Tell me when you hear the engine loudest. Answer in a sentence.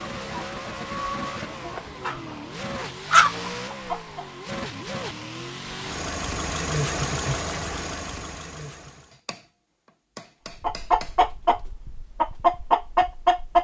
The loudest moment of the engine is at 7 seconds.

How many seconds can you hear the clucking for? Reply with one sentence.
The clucking can be heard for 7 seconds in total.